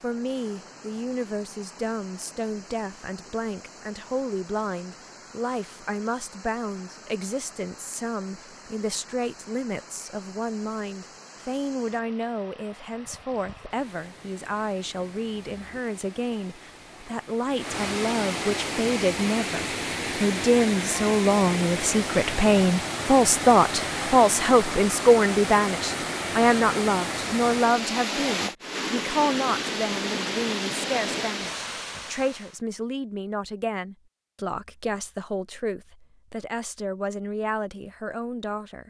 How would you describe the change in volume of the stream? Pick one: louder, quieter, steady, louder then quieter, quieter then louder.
louder.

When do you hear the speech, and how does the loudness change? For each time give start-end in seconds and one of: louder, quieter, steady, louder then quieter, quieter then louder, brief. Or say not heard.
0.0-38.8 louder then quieter.